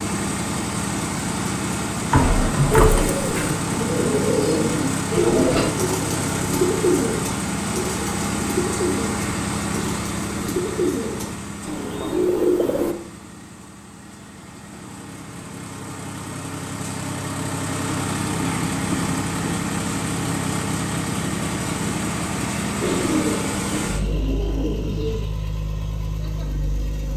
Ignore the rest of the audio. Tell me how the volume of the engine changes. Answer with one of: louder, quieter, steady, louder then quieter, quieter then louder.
quieter then louder.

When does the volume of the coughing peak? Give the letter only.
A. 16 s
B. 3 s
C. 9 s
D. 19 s
B.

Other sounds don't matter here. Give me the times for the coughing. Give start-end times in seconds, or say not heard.
2.1-3.0, 18.4-19.6.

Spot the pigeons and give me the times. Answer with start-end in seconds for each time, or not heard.
2.7-12.9, 22.8-25.2.